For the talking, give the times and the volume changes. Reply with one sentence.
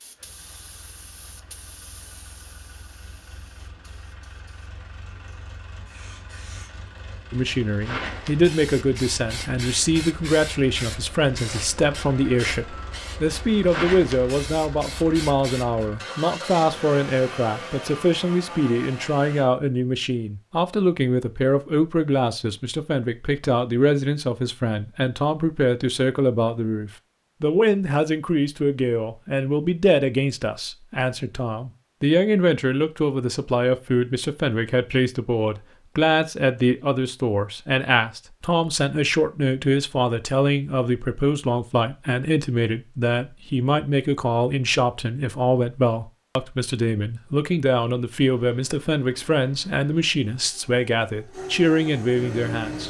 The talking can be heard from 7.3 to 52.8 s, at a steady volume.